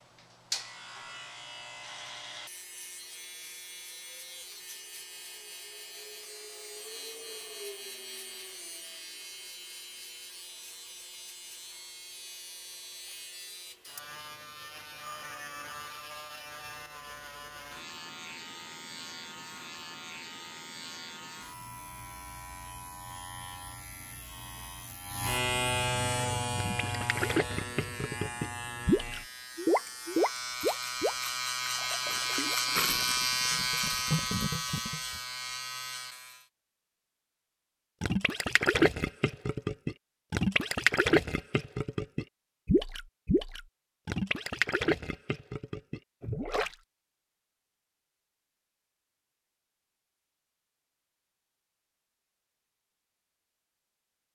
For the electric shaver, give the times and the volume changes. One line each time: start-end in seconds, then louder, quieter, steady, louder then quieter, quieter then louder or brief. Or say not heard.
0.0-36.5 louder.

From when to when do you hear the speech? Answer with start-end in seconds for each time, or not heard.
not heard.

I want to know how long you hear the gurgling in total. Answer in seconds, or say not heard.
18 s.